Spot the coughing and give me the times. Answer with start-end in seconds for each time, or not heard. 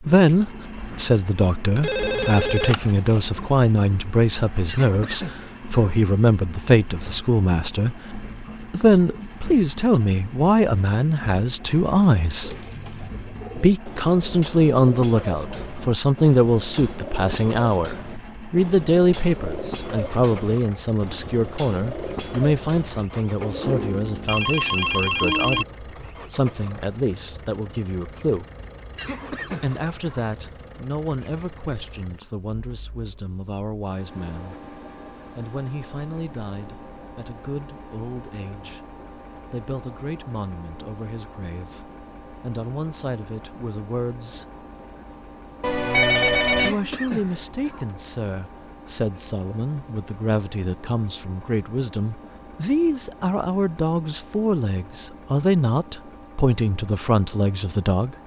4.7-6.0, 28.9-30.3, 46.5-48.0.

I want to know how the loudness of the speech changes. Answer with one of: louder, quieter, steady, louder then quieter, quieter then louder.
quieter then louder.